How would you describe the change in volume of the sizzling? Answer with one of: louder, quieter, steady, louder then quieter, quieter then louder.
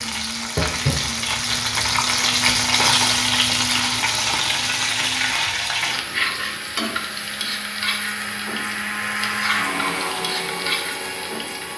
quieter.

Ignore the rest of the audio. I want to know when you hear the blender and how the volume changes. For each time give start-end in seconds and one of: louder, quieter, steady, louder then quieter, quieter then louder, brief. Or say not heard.
0.0-11.7 louder.